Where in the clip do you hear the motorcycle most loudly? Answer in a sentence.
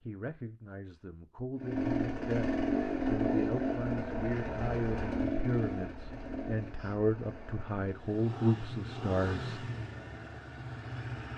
The volume of the motorcycle peaks at 3 seconds.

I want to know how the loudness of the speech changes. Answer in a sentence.
The loudness of the speech goes up.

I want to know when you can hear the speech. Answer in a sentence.
The speech can be heard from 0.0 to 9.6 s.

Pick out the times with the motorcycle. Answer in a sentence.
You can hear the motorcycle from 1.6 to 11.3 s.